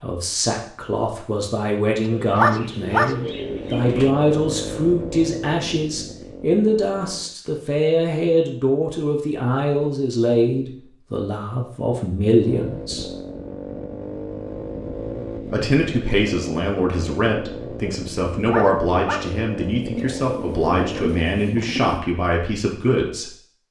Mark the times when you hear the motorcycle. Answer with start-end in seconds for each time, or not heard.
3.1-7.3, 12.2-21.2.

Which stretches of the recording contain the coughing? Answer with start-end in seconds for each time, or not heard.
not heard.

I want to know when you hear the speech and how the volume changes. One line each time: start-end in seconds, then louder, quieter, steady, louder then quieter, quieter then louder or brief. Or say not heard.
0.0-13.1 steady
15.5-23.4 steady.